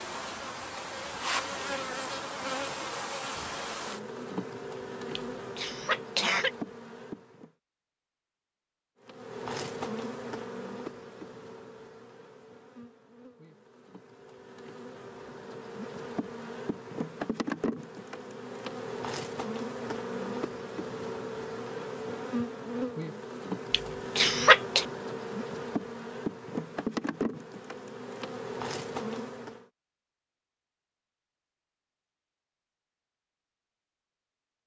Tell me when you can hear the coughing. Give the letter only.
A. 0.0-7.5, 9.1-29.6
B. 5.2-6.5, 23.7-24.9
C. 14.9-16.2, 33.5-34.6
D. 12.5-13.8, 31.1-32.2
B.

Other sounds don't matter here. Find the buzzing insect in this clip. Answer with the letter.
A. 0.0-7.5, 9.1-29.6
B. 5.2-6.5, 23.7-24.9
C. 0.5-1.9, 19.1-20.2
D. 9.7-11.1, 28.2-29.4
A.